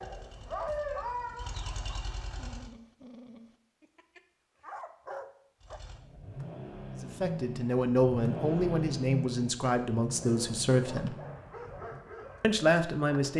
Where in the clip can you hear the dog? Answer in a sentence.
The dog can be heard from 0.0 to 5.8 s and from 10.2 to 13.3 s.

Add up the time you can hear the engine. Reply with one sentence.
The engine can be heard for 9 seconds in total.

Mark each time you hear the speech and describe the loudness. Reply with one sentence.
The speech can be heard from 7.0 to 11.2 s, at a steady volume; and briefly from 12.4 to 13.3 s.